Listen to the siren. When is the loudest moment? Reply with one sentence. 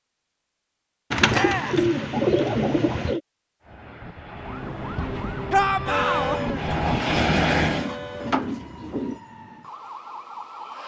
The volume of the siren peaks at 6 seconds.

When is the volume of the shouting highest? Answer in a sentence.
The volume of the shouting peaks at 6 seconds.